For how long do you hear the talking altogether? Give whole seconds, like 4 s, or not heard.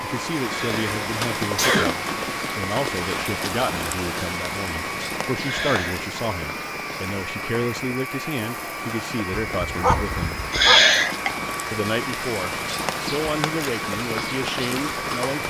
14 s.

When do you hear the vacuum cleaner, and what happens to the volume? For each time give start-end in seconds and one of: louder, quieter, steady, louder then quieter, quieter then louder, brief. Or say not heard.
0.0-15.4 steady.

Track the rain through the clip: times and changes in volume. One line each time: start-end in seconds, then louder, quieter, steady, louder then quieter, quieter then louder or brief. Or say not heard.
0.0-15.4 quieter then louder.